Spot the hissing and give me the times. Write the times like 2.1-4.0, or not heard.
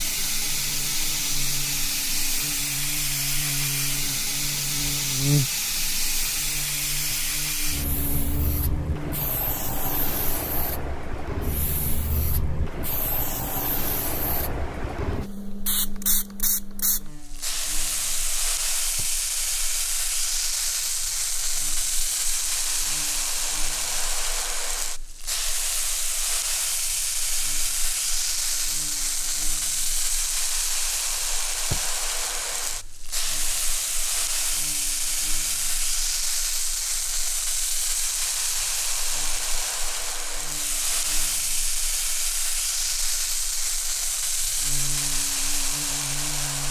0.0-46.6.